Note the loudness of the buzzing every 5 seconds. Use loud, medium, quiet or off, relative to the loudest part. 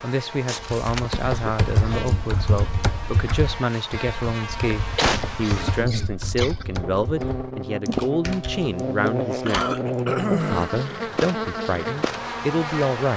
medium, loud, loud.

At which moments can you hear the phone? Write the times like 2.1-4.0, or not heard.
not heard.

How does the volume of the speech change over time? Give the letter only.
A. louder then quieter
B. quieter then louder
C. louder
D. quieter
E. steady
E.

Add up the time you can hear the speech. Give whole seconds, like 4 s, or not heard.
13 s.